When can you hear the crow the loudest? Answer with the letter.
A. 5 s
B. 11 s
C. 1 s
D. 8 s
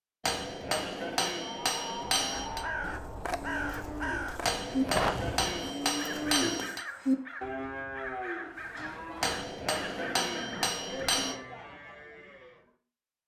A.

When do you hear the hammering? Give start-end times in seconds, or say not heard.
0.2-2.6, 4.4-6.8, 9.2-11.3.